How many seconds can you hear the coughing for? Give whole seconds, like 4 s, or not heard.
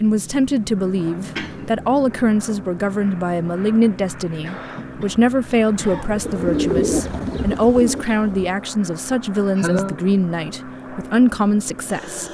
3 s.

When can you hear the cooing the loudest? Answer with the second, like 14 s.
7 s.